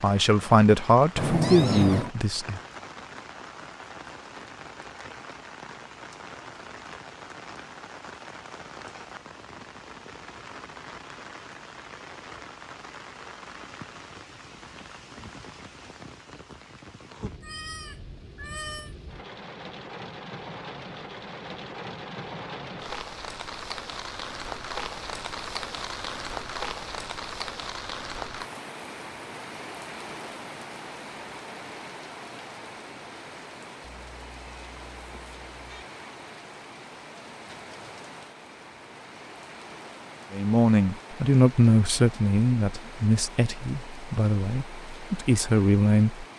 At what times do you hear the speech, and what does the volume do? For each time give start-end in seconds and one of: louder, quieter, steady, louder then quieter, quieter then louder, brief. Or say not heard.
0.0-2.6 brief
40.3-46.2 quieter then louder.